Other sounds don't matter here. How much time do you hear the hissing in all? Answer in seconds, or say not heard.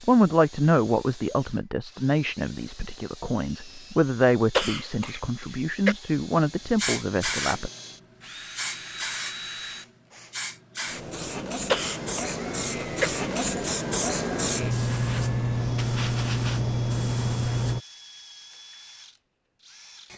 11 s.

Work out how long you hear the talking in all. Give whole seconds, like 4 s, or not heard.
8 s.